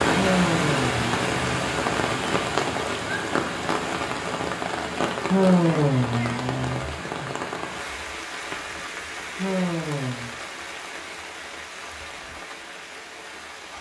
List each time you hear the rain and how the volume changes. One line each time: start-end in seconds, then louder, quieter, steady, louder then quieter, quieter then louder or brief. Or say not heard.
0.0-13.7 quieter.